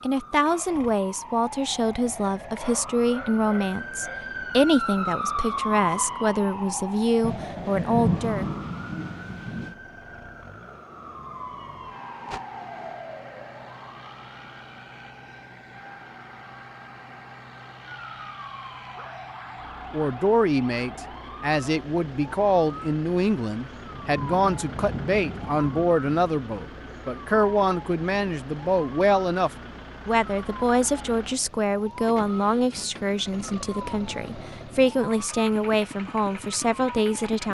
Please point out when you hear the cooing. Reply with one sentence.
You can't hear the cooing here.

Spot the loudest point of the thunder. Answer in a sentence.
The volume of the thunder peaks at 8 seconds.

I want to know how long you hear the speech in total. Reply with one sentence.
You can hear the speech for 26 seconds altogether.